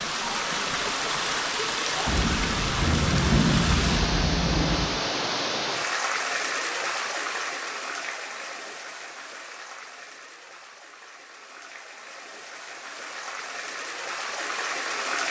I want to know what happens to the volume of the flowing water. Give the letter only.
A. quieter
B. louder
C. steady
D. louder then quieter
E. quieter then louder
E.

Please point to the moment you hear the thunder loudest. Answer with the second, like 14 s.
3 s.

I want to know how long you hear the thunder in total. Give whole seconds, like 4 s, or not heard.
3 s.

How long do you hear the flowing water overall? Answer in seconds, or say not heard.
15 s.